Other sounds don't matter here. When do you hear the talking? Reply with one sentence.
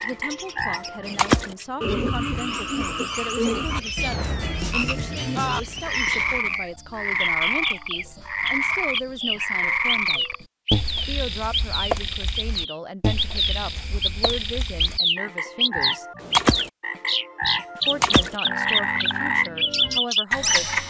You can hear the talking from 0.0 to 10.3 s, from 11.1 to 16.1 s and from 17.8 to 20.8 s.